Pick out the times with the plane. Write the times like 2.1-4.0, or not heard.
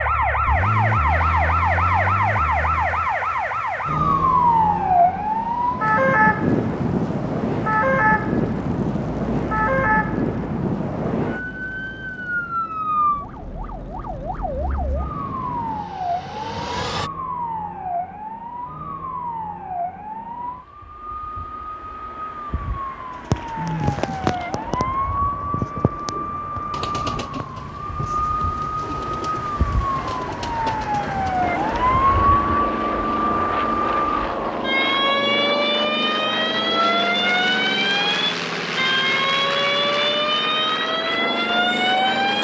6.4-17.1, 31.4-42.3.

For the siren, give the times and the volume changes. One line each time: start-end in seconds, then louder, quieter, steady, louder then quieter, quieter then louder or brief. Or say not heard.
0.0-42.3 quieter then louder.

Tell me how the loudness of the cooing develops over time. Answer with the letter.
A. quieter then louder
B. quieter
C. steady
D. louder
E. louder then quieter
B.